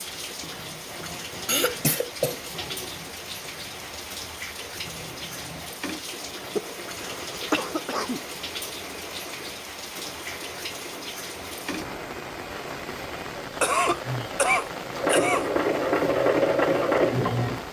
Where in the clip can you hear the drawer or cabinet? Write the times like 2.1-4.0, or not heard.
not heard.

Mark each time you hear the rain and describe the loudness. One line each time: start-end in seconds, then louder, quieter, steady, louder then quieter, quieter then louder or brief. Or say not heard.
0.0-17.6 steady.